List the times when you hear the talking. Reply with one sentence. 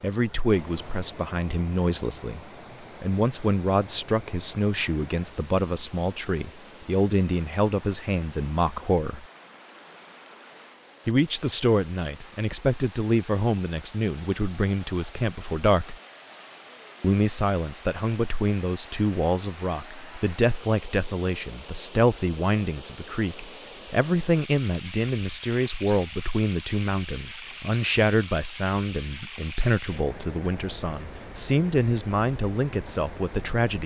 The talking can be heard from 0.0 to 2.4 s, from 3.0 to 9.2 s, from 11.1 to 15.9 s and from 17.0 to 33.8 s.